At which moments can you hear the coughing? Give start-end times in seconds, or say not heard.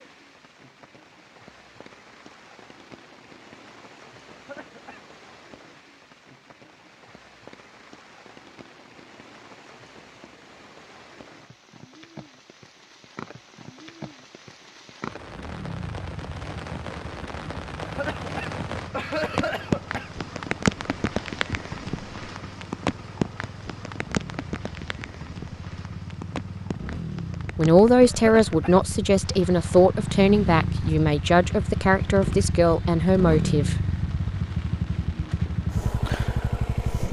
4.3-5.0, 17.8-20.1, 28.1-28.8.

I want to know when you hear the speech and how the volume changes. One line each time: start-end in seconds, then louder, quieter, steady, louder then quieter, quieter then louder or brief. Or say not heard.
27.6-33.8 steady.